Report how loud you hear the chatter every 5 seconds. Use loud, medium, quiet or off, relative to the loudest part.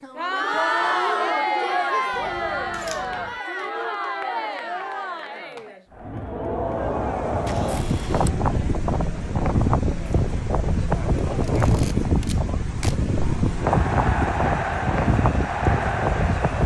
loud, medium, medium, loud.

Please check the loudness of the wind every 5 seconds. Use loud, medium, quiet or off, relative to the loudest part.
off, loud, loud, loud.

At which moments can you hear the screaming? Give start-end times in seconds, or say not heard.
not heard.